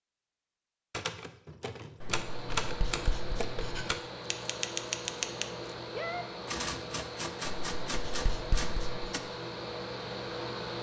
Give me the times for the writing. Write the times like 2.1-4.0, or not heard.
2.0-3.9, 7.5-9.2.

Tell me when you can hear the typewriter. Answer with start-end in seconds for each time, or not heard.
0.9-9.2.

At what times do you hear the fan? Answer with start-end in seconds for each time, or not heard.
2.1-10.7.